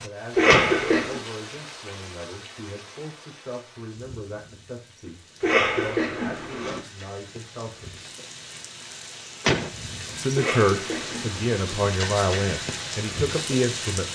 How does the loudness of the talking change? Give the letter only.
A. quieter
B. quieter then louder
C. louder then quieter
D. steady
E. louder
E.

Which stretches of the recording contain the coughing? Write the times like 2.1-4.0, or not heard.
0.3-1.2, 5.4-6.8, 10.3-11.8.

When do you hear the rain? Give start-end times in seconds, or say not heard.
0.0-14.1.